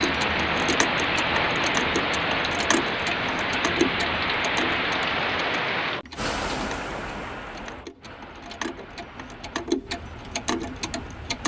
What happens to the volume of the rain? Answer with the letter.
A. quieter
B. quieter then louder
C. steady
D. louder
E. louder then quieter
A.